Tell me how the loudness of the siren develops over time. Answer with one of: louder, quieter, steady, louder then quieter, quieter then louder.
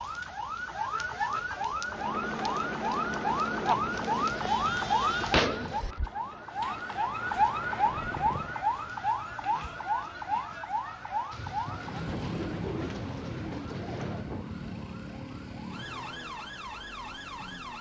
quieter.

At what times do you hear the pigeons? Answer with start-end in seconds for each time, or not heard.
4.0-6.0, 11.3-14.2.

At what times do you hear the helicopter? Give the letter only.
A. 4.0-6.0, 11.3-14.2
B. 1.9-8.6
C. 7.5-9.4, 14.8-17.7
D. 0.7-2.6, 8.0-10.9
B.